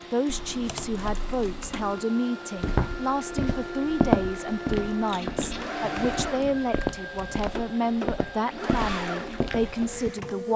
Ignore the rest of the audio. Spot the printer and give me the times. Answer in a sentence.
You can hear the printer from 0.0 to 10.5 s.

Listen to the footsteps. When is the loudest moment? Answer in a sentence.
The volume of the footsteps peaks at 4 seconds.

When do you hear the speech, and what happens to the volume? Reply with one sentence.
You can hear the speech from 0.1 to 10.5 s, at a steady volume.